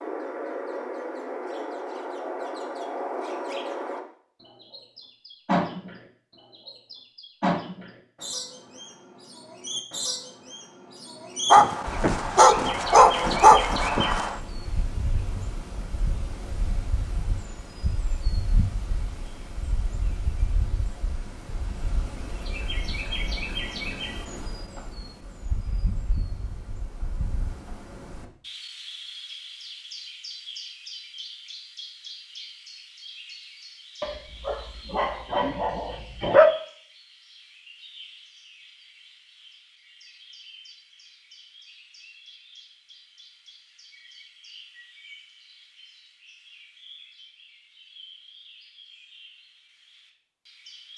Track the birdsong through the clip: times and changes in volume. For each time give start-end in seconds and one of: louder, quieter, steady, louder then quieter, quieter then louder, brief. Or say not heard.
0.0-50.9 quieter.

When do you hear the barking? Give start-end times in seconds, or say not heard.
11.5-14.3, 34.0-36.5.